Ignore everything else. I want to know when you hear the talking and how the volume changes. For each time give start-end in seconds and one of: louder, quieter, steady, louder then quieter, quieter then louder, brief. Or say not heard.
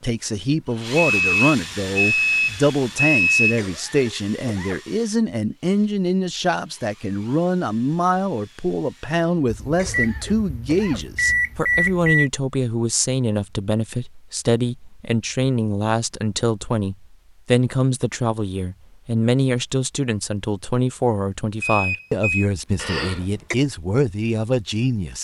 0.0-25.1 steady.